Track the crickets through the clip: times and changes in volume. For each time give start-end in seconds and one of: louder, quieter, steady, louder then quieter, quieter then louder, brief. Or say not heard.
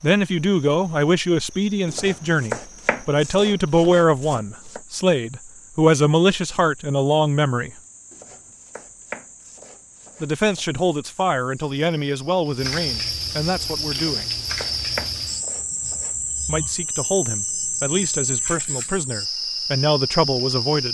0.0-20.8 louder.